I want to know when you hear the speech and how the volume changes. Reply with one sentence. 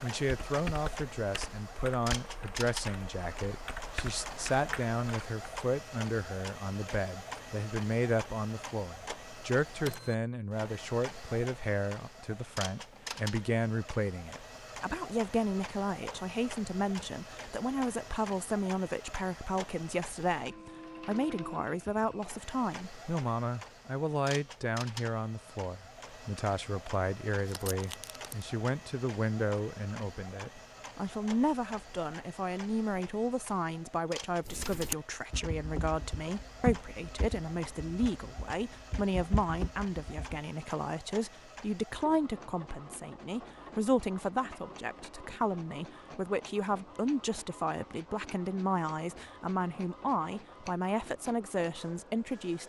The speech can be heard from 0.0 to 52.6 s, at a steady volume.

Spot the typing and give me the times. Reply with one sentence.
You can hear the typing from 0.2 to 5.5 s and from 34.5 to 40.4 s.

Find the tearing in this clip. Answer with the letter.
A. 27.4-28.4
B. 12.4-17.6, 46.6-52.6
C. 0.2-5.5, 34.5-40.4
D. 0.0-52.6
A.